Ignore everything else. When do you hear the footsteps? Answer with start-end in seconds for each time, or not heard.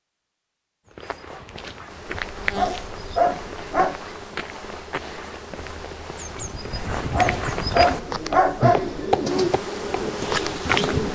0.8-11.0.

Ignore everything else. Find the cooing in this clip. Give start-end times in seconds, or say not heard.
7.9-11.1.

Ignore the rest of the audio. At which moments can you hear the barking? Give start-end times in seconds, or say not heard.
2.2-4.0, 7.0-9.1.